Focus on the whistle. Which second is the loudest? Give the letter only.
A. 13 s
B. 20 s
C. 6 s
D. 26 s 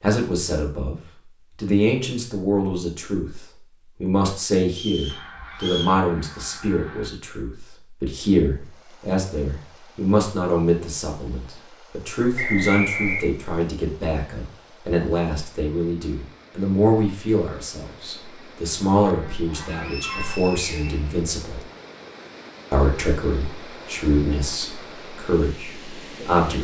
A.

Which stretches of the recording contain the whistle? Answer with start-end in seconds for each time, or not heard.
4.7-6.0, 12.3-13.3, 19.8-21.6.